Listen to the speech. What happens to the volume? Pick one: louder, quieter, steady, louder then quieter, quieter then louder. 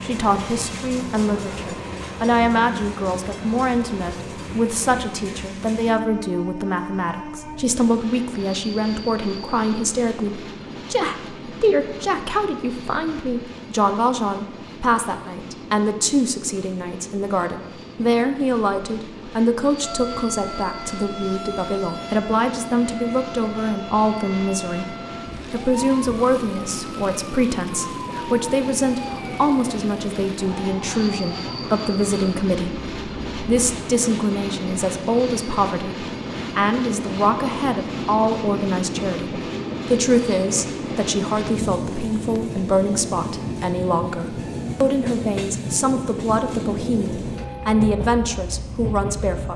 steady.